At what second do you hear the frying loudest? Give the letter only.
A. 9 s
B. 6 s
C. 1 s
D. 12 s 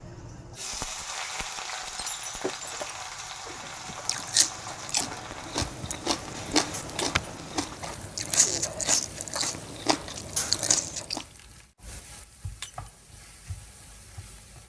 C.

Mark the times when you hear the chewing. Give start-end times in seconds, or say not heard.
3.9-11.2.